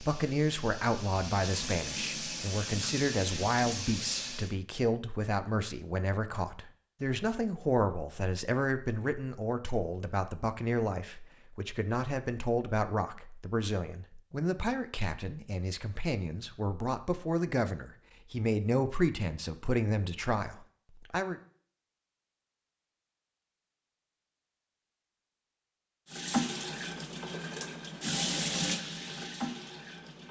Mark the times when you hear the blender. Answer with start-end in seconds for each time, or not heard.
not heard.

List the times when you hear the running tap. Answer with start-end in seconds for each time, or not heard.
0.0-4.5, 26.1-30.2.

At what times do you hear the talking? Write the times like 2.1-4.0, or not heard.
0.0-21.4.